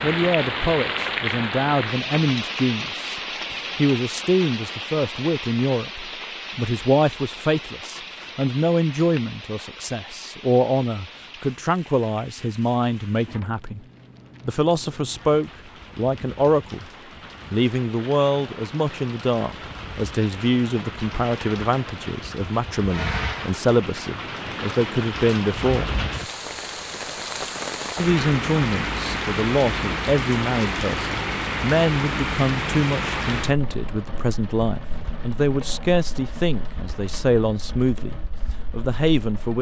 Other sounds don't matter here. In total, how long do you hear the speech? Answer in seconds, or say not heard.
36 s.